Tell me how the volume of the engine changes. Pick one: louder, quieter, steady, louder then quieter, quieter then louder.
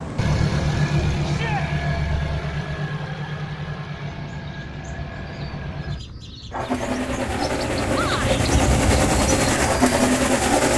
quieter then louder.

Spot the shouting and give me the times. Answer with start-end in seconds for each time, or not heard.
1.2-1.6, 7.9-8.4.